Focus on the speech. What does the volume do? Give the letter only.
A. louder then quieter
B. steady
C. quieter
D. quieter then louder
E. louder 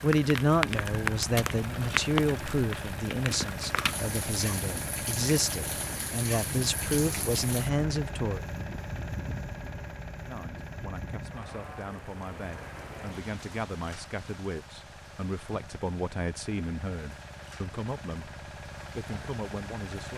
C.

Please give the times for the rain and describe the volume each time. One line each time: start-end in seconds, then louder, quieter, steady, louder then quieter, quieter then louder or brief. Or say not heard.
0.0-20.1 quieter.